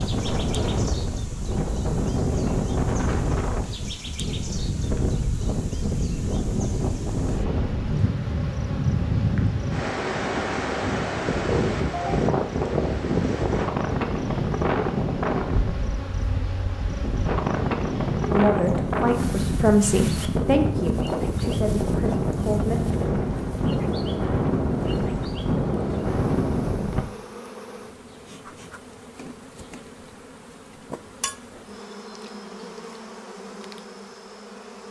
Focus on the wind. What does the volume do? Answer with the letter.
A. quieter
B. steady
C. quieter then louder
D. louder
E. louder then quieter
B.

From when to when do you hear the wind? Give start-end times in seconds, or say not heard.
0.0-27.1.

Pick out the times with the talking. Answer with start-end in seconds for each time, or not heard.
18.2-22.8.